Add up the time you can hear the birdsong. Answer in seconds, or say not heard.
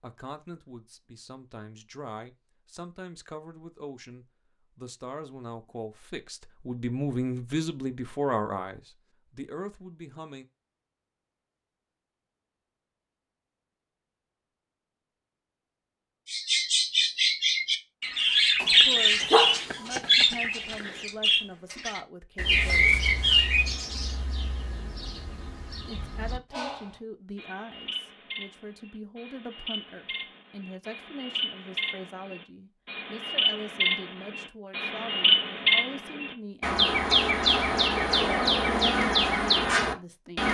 24 s.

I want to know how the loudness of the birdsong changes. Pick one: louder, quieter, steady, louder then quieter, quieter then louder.
quieter then louder.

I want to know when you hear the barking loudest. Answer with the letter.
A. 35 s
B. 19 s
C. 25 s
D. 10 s
B.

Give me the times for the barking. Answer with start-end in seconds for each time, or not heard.
18.6-21.1.